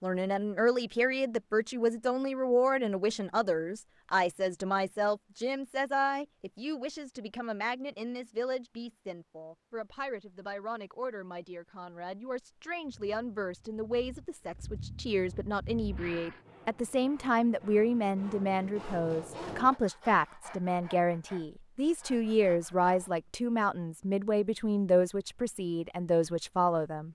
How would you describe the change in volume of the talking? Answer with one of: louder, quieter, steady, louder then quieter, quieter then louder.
quieter then louder.